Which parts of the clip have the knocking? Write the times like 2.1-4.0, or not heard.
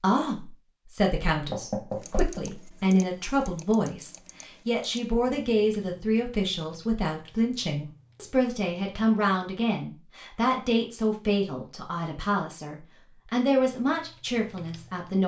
1.5-2.5.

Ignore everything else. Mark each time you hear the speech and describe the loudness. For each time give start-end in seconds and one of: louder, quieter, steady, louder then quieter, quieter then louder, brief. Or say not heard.
0.0-15.2 steady.